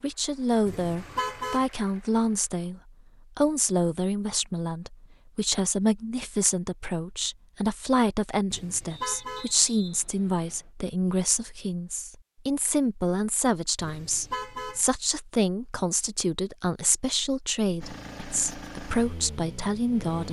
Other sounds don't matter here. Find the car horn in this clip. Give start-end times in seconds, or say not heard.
0.7-1.7, 8.5-9.5, 13.8-14.8.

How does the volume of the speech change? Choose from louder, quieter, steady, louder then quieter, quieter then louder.
steady.